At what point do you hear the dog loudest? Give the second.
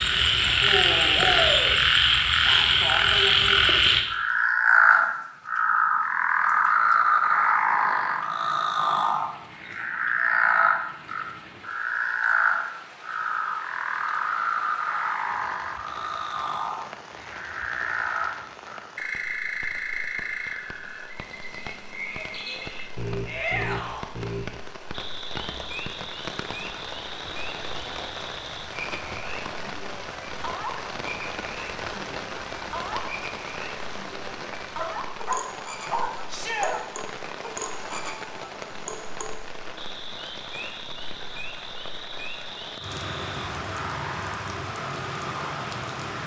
36 s.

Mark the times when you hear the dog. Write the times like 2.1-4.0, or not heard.
34.8-36.8.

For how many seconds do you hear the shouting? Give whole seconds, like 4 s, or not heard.
2 s.